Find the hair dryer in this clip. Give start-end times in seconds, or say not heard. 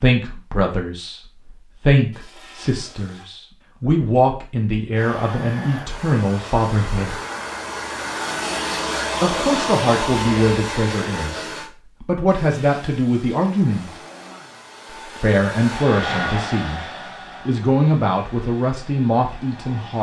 4.9-11.7, 13.7-19.9.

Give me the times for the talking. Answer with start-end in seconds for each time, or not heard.
0.0-7.2, 9.2-13.9, 15.2-16.9, 17.4-19.9.